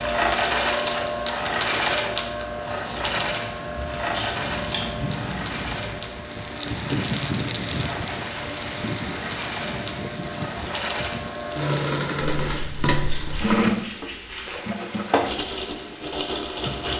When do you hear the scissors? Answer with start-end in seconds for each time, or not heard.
4.1-5.2, 12.4-14.6.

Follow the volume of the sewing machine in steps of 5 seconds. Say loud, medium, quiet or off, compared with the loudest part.
loud, medium, loud, loud.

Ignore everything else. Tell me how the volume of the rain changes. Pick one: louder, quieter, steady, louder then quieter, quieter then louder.
louder then quieter.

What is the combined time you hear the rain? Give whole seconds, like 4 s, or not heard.
17 s.